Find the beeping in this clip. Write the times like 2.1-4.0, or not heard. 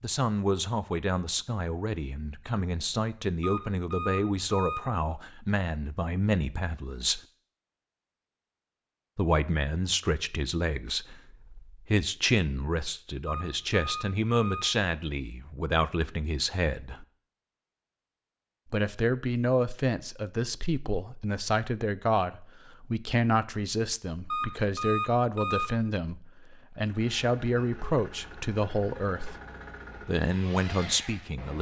3.4-5.2, 13.2-14.7, 24.3-25.7.